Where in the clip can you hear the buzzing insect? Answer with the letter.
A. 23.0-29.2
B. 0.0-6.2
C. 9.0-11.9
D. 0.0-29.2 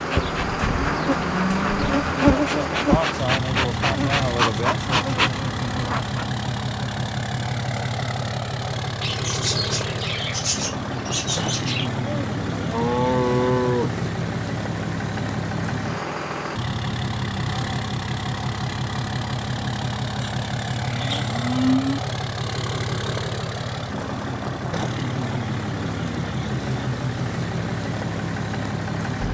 B.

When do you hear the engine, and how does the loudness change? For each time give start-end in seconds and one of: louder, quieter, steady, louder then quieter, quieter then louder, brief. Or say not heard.
0.0-29.2 steady.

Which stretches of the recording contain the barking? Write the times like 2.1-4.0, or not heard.
not heard.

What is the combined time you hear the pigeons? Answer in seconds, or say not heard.
3 s.